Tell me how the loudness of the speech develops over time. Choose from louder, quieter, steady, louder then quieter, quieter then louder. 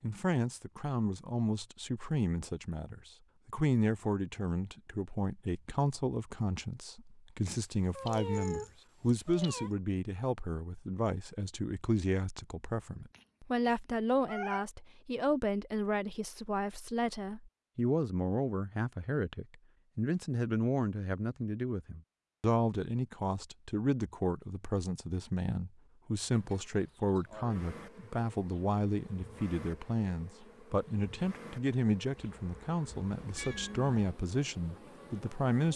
steady.